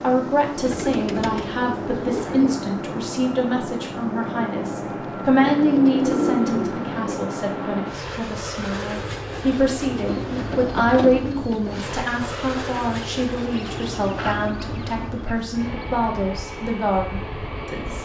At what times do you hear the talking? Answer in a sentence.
The talking can be heard from 0.0 to 18.0 s.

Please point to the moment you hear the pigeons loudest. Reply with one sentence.
The volume of the pigeons peaks at 6 seconds.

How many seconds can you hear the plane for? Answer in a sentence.
The plane can be heard for 18 seconds in total.